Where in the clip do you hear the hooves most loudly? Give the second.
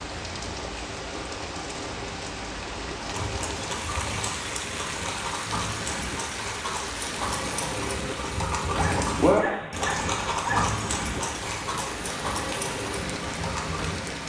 9 s.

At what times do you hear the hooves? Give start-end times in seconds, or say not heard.
3.0-14.1.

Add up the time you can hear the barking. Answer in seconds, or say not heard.
2 s.